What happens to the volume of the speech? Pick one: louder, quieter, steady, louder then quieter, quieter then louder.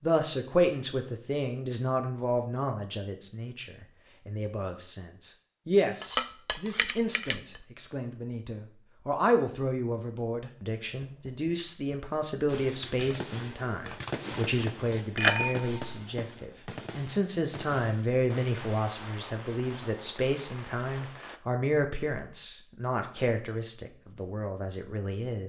steady.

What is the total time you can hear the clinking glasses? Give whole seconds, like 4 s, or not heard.
2 s.